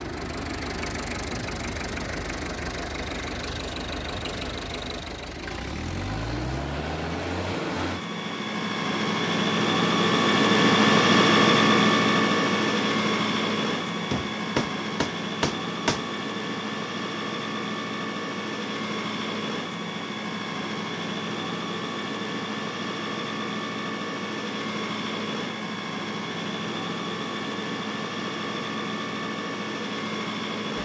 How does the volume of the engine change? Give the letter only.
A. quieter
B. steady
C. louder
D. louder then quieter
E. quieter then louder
D.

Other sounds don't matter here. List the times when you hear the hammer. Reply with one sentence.
You can hear the hammer from 14.1 to 16.1 s.